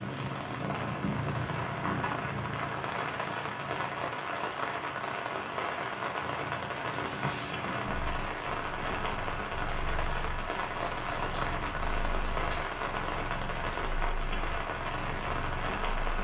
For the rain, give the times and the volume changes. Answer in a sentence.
You can hear the rain from 0.0 to 16.1 s, at a steady volume.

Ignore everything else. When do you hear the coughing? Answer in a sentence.
The coughing can't be heard in this clip.